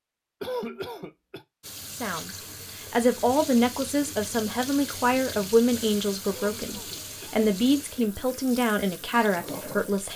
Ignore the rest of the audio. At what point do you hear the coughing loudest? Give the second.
1 s.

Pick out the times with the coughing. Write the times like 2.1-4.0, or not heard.
0.4-1.4, 6.2-7.5.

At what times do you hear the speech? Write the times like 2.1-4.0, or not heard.
1.9-10.1.